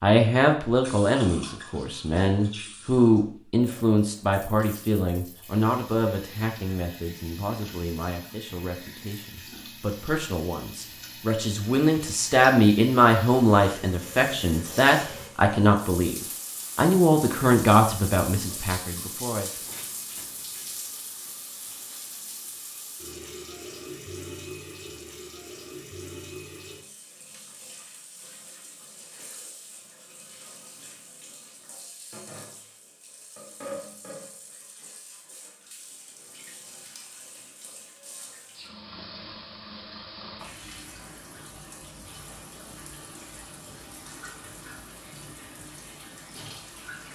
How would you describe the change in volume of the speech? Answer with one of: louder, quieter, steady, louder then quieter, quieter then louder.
quieter then louder.